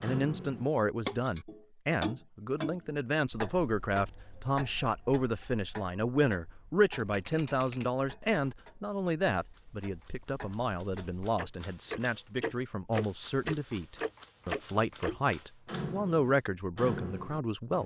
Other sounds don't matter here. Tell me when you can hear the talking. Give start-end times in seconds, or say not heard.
0.0-17.8.